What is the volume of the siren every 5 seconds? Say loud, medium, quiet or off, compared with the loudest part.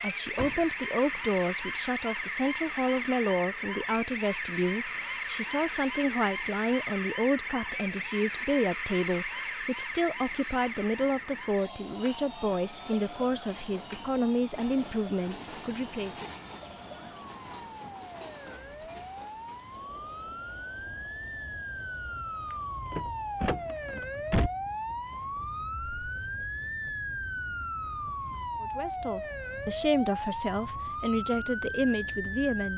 loud, loud, medium, medium, loud, loud, loud.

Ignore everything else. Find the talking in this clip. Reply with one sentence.
The talking can be heard from 0.0 to 16.2 s and from 28.6 to 32.7 s.